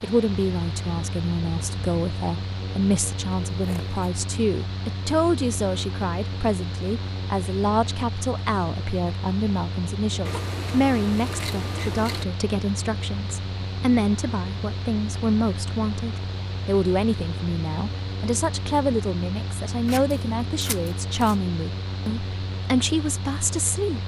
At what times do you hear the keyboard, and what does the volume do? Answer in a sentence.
You can't hear the keyboard here.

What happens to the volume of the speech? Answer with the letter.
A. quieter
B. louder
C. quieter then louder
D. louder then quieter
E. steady
E.